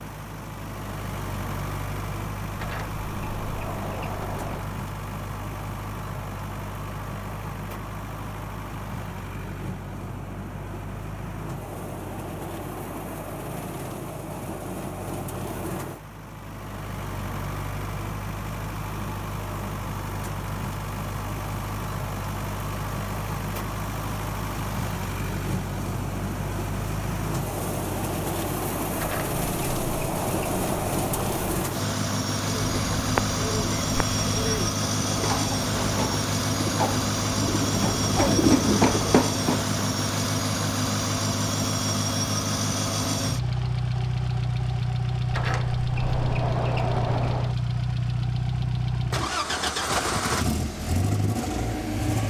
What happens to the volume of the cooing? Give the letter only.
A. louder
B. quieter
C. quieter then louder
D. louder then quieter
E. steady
A.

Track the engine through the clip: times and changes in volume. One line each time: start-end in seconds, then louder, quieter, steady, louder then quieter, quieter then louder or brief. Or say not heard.
0.0-52.2 louder.